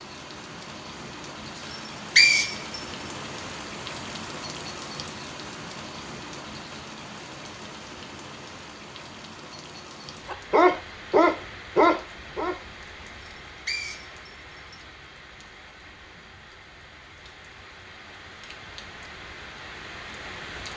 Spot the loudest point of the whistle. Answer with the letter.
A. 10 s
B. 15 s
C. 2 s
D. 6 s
C.